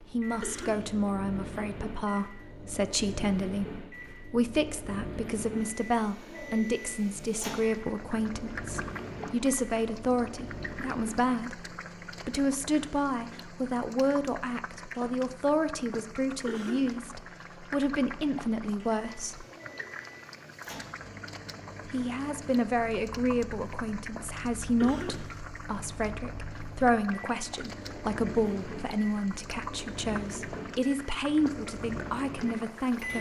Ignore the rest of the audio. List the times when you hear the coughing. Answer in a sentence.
The coughing can be heard from 0.4 to 0.9 s, from 16.4 to 17.0 s and from 24.8 to 25.3 s.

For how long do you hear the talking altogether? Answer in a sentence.
The talking can be heard for 31 seconds in total.